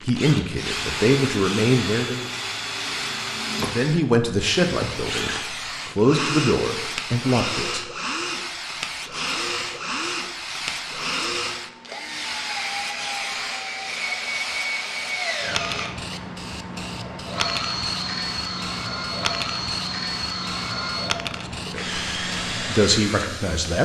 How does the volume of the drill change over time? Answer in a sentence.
The loudness of the drill stays about the same.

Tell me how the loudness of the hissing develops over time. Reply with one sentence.
The volume of the hissing stays about the same.